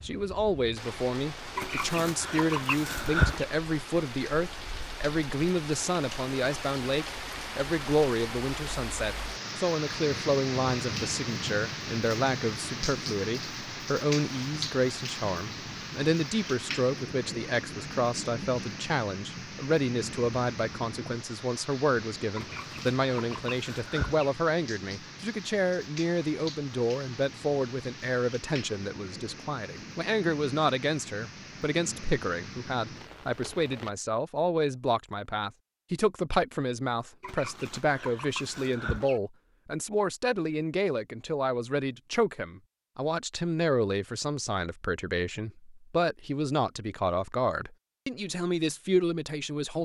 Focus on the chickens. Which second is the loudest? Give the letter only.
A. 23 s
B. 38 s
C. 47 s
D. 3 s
D.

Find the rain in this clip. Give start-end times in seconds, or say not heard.
0.0-34.0.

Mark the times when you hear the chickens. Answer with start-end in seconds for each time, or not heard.
1.6-3.5, 22.4-24.3, 37.2-39.2.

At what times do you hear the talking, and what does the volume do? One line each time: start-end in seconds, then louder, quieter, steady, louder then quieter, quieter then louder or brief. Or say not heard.
0.0-49.8 steady.